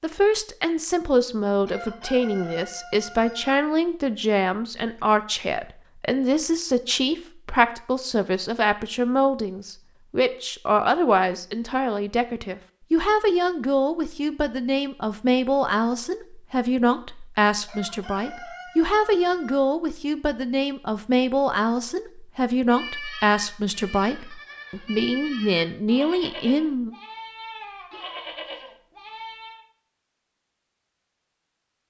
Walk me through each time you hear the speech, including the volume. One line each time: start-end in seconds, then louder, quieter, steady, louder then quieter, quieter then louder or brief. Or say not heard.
0.0-26.9 steady.